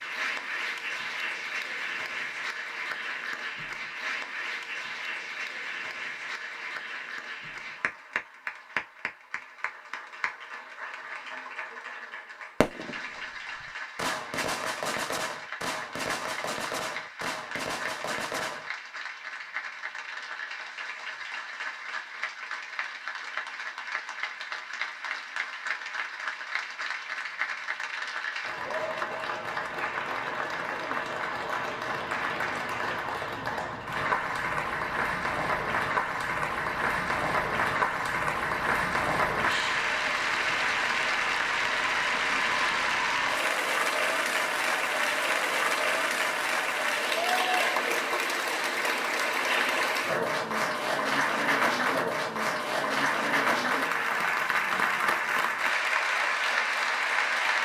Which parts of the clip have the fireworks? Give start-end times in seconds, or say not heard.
12.6-18.7.